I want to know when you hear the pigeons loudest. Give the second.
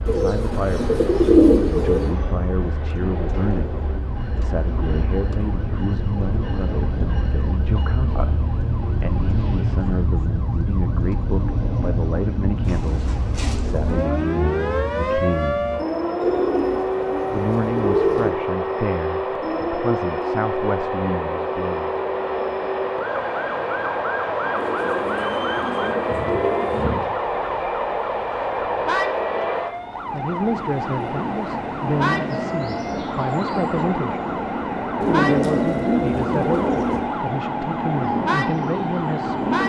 1 s.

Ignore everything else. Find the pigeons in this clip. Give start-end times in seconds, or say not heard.
0.1-2.1, 12.7-14.1, 16.2-18.3, 24.6-27.0, 35.0-37.0.